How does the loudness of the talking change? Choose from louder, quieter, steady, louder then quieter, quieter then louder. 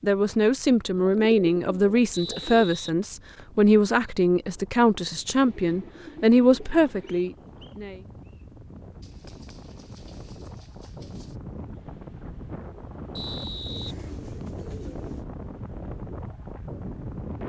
steady.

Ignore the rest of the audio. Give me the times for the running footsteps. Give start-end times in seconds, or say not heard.
not heard.